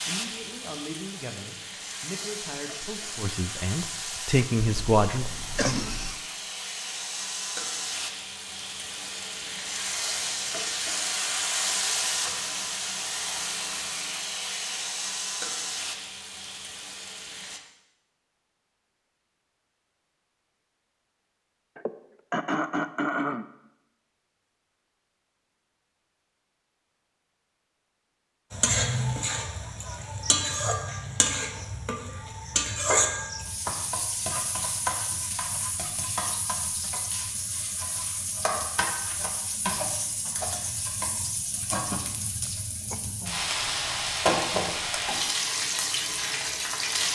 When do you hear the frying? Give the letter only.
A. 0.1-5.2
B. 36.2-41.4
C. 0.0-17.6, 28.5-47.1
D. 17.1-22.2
C.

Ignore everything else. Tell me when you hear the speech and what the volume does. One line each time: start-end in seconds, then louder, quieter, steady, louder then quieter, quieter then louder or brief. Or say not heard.
0.1-5.2 louder.